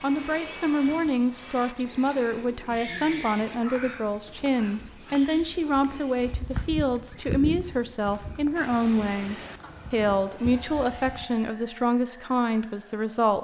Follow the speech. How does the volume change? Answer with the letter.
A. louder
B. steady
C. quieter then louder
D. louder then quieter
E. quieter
B.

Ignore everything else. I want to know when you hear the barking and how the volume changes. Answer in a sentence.
You can't hear the barking here.